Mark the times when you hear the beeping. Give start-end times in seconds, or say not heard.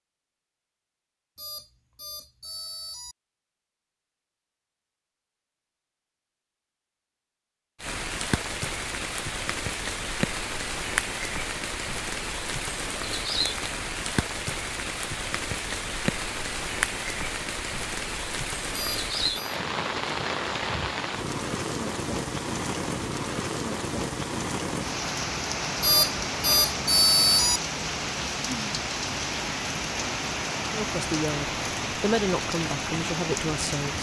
1.4-3.1, 18.7-19.6, 25.8-27.6.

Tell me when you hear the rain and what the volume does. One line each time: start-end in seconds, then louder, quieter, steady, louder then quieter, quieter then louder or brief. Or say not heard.
7.8-33.9 steady.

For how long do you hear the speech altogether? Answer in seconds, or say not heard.
3 s.